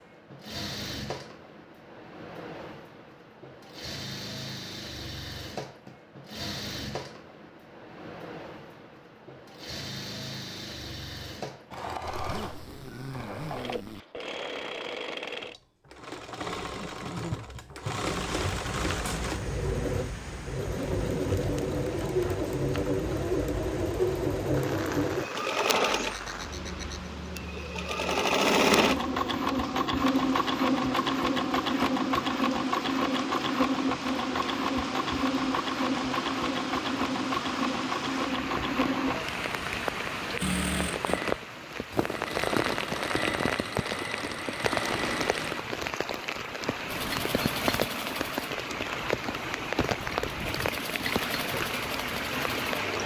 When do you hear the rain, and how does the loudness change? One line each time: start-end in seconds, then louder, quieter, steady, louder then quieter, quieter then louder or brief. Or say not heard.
18.1-53.0 louder.